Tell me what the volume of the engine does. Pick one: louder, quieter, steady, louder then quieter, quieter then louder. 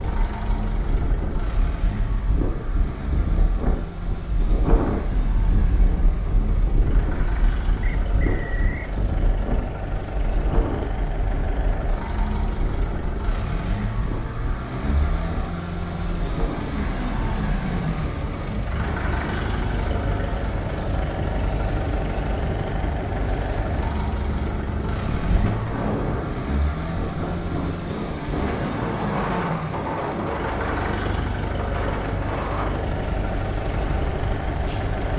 louder.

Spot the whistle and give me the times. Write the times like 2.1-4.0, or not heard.
7.8-8.9.